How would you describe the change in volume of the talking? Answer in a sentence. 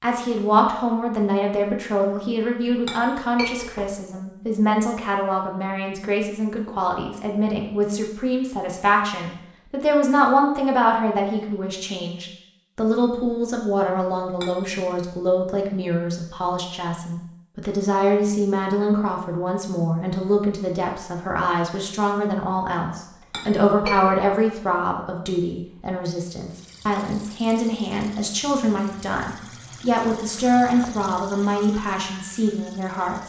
The volume of the talking stays about the same.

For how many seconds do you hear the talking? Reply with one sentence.
The talking can be heard for 33 seconds in total.